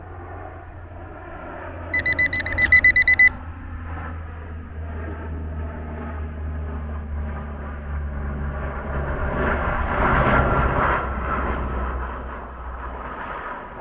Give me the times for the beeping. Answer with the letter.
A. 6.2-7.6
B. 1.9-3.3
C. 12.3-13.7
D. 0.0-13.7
B.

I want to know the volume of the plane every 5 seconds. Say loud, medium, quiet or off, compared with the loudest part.
quiet, medium, loud.